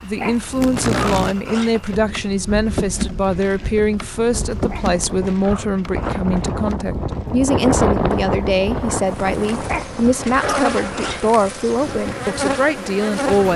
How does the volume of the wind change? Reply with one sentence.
The loudness of the wind goes up, then down.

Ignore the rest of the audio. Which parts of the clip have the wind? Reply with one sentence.
You can hear the wind from 4.2 to 13.5 s.